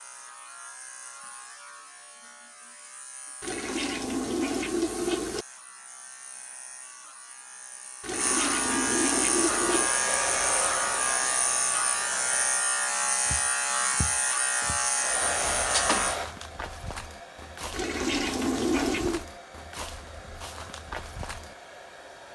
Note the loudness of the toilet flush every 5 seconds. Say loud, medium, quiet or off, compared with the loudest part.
loud, loud, off, loud, off.